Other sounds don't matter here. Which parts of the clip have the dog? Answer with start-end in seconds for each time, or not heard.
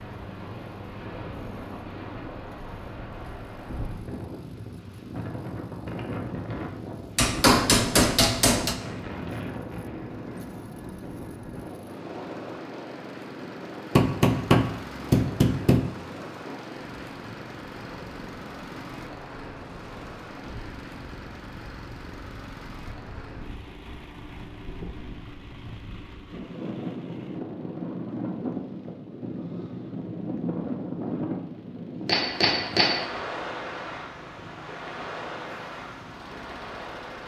not heard.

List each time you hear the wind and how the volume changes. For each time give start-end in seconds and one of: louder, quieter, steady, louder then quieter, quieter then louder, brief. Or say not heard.
0.0-37.2 quieter then louder.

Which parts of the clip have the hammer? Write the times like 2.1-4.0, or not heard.
7.2-8.8, 13.9-15.8, 32.0-33.0.